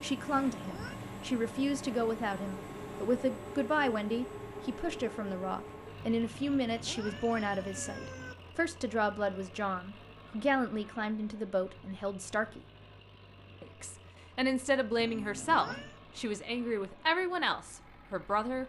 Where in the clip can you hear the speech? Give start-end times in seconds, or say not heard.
0.0-12.6, 13.6-18.6.